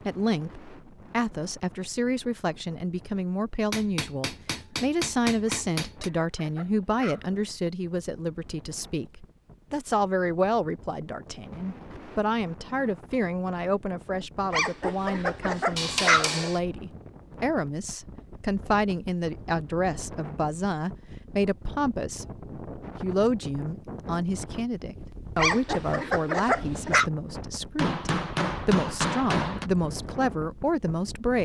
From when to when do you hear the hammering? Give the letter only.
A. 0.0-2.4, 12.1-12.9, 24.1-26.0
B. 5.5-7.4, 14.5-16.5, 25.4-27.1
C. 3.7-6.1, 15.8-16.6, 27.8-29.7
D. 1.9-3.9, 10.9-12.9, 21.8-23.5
C.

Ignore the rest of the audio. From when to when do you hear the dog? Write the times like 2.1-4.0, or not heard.
5.5-7.4, 14.5-16.5, 25.4-27.1.